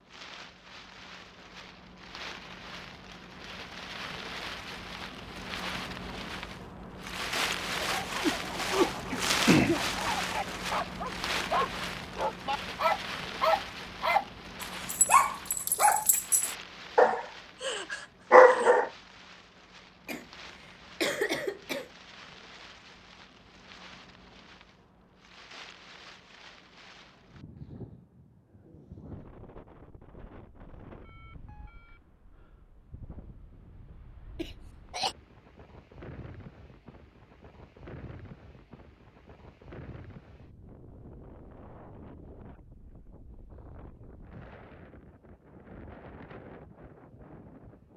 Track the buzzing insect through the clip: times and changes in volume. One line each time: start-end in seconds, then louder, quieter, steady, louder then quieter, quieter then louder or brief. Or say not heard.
not heard.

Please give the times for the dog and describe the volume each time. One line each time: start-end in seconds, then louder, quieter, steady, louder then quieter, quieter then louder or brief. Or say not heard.
7.8-18.9 louder.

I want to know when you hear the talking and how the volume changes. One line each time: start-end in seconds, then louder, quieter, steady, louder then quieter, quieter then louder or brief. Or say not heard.
not heard.